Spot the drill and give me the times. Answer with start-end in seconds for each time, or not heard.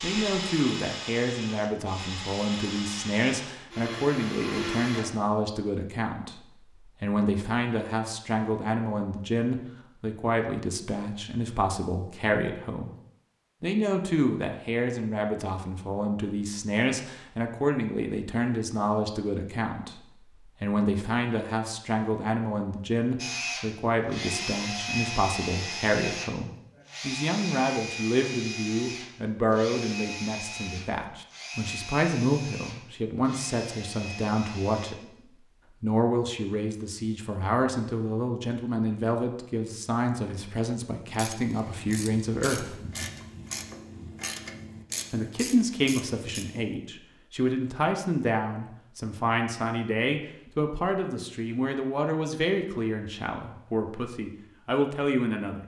0.0-5.2, 23.1-35.0.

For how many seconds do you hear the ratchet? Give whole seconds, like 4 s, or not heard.
6 s.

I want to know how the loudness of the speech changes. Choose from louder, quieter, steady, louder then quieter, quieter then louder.
steady.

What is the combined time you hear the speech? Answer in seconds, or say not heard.
52 s.